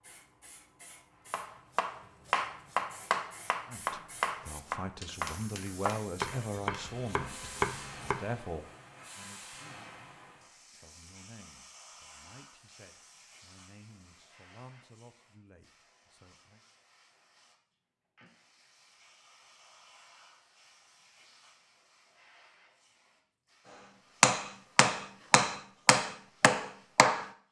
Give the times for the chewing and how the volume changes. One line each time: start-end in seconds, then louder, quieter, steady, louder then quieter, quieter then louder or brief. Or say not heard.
not heard.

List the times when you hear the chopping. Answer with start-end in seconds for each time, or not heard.
1.3-8.2, 24.2-27.2.